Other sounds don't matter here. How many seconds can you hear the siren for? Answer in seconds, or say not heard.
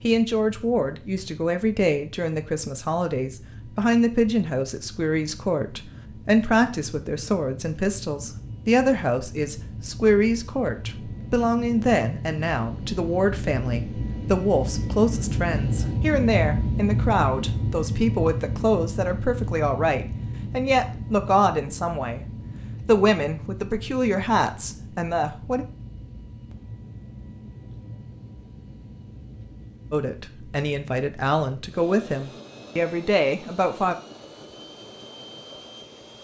not heard.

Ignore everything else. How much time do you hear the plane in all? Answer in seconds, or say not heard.
36 s.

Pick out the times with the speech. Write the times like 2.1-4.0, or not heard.
0.0-22.2, 22.9-25.6, 29.9-34.0.